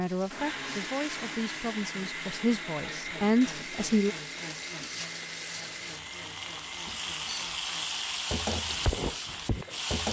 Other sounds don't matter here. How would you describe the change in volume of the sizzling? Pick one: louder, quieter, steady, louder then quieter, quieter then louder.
louder.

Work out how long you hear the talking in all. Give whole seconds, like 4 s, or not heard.
4 s.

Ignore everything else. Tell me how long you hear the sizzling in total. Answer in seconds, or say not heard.
10 s.